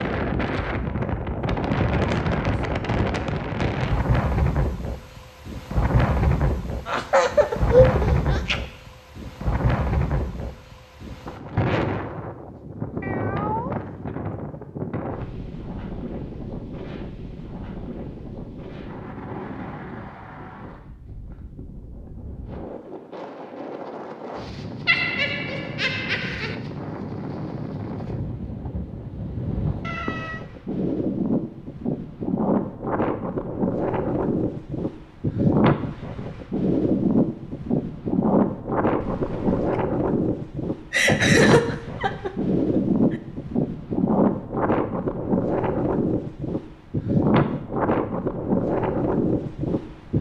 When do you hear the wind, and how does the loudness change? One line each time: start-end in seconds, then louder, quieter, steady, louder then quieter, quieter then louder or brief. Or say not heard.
0.0-50.1 quieter then louder.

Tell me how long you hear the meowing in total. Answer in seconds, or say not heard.
2 s.